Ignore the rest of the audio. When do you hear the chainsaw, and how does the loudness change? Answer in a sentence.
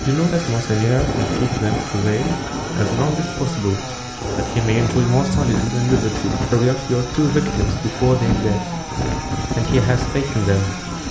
You can hear the chainsaw from 0.0 to 11.0 s, at a steady volume.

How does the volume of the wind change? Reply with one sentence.
The loudness of the wind stays about the same.